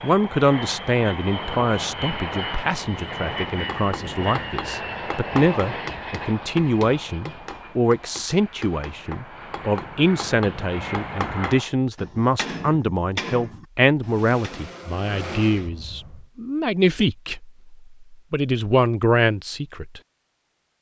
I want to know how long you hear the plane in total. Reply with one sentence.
You can hear the plane for 14 seconds altogether.